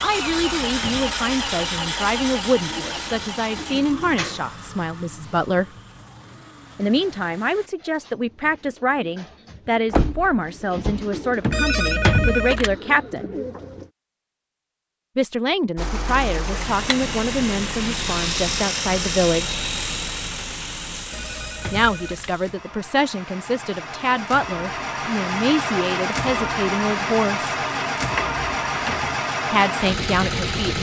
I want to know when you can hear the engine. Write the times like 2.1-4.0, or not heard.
0.0-7.7, 15.8-30.7.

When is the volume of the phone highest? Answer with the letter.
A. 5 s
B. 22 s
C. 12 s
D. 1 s
C.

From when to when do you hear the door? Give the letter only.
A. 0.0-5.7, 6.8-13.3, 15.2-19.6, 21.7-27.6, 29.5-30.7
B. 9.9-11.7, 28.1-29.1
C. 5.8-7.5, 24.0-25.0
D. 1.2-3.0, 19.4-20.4
B.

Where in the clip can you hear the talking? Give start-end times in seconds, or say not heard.
0.0-5.7, 6.8-13.3, 15.2-19.6, 21.7-27.6, 29.5-30.7.